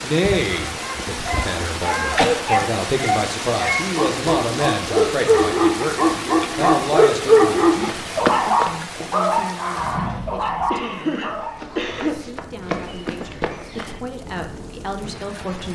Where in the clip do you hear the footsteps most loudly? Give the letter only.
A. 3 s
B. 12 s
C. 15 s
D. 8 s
D.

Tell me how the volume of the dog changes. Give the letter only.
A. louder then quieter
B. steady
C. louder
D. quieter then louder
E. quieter
A.